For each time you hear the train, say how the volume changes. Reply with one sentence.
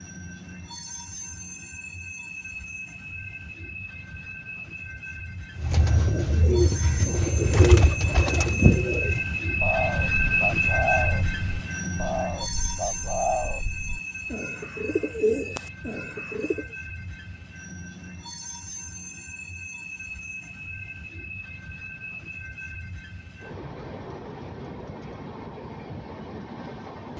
You can hear the train from 0.0 to 27.1 s, getting louder then quieter.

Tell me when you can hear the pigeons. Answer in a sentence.
The pigeons can be heard from 5.5 to 16.6 s.